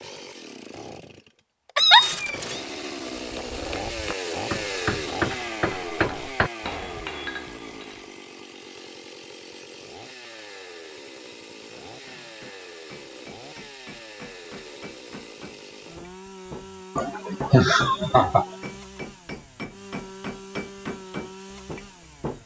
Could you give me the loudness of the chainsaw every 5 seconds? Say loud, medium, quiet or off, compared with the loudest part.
loud, loud, medium, medium, medium.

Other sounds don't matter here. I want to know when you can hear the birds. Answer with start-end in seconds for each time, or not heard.
not heard.